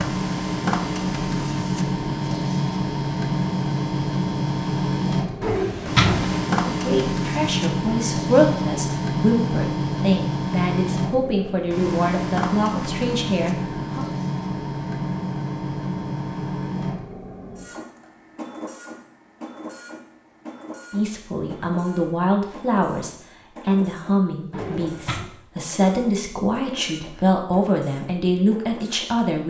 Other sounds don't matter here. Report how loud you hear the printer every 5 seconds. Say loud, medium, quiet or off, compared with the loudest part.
loud, loud, loud, medium, quiet, quiet.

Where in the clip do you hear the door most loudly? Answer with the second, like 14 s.
6 s.